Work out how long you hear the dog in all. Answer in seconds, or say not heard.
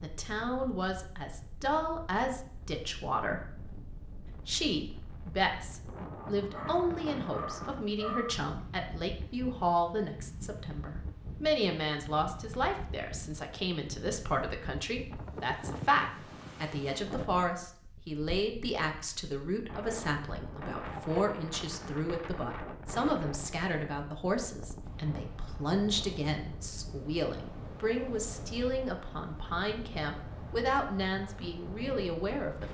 2 s.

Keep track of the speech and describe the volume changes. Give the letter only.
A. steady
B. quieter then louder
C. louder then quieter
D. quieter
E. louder
A.